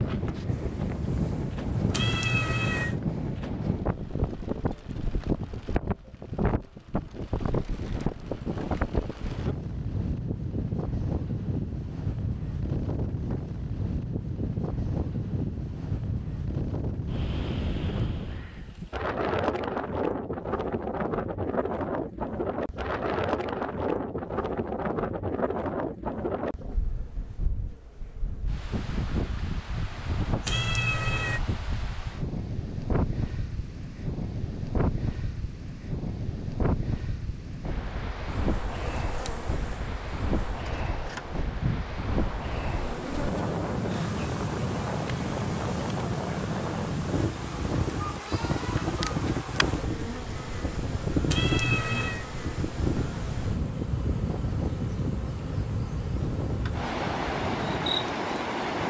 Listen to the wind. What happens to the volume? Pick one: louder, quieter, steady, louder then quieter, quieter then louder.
steady.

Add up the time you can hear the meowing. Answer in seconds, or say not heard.
3 s.